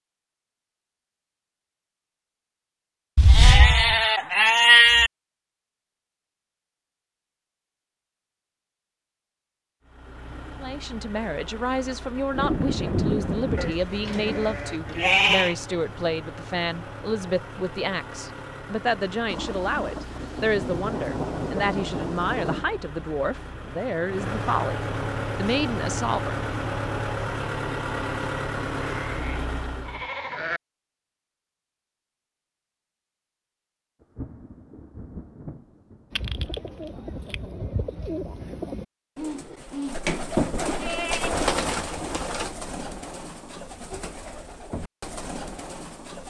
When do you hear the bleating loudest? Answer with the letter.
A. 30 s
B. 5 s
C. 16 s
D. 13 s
B.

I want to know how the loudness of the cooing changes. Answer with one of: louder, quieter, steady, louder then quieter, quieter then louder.
louder then quieter.